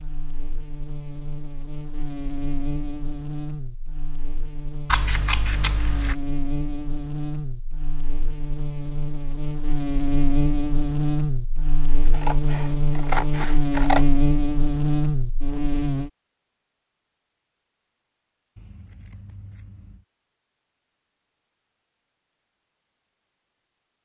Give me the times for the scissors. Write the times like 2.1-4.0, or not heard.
4.8-6.2, 12.1-14.1, 18.6-20.0.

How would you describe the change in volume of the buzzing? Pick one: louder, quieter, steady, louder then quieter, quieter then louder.
louder.